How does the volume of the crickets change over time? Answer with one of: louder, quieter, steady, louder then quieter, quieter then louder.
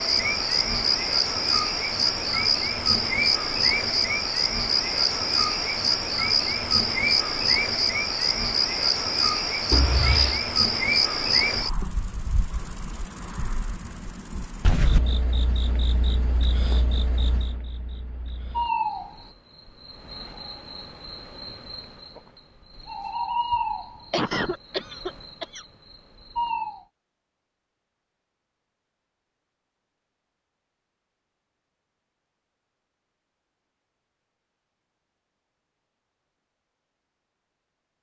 quieter.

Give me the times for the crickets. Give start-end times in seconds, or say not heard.
0.0-26.9.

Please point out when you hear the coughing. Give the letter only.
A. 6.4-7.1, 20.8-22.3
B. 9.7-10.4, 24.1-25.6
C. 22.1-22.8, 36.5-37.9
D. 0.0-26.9
B.